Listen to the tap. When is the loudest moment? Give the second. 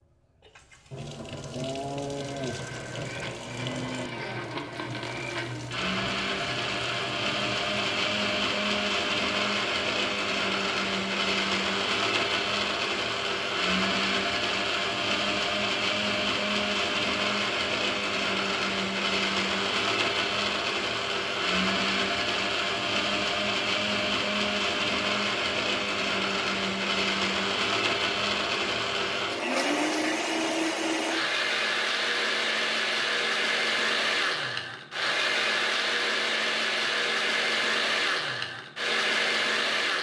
2 s.